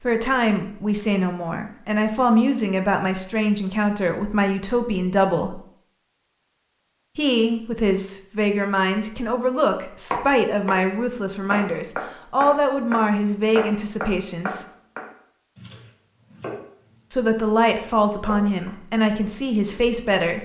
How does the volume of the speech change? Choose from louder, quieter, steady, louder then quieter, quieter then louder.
steady.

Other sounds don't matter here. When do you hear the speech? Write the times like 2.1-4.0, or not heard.
0.0-5.6, 7.2-14.7, 17.1-20.4.